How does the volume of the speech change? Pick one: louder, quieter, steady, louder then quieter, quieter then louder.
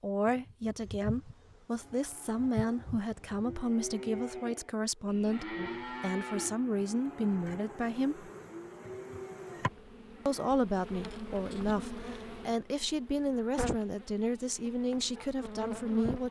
steady.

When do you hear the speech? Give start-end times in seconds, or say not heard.
0.0-8.2, 10.2-16.2.